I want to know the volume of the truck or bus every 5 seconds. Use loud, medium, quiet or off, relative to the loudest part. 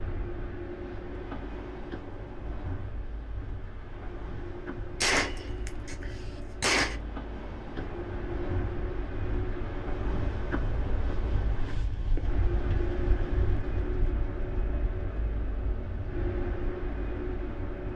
medium, loud, loud, loud.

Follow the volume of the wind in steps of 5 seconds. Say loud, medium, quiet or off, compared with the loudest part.
medium, loud, loud, medium.